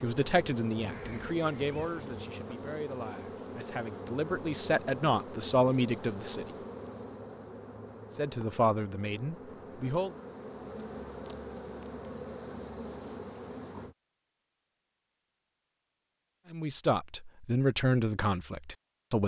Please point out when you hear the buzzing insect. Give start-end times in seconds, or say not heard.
0.0-13.9.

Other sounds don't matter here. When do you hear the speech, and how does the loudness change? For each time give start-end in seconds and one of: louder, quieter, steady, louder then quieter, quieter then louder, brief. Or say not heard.
0.0-6.5 quieter then louder
8.2-10.1 brief
16.5-19.2 brief.